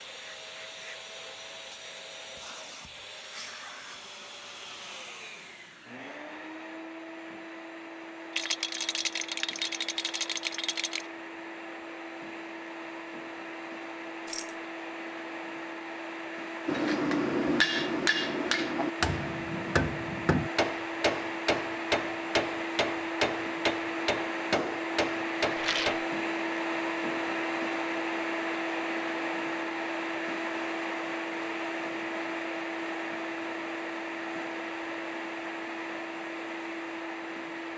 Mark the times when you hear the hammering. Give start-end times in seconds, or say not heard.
16.6-26.0.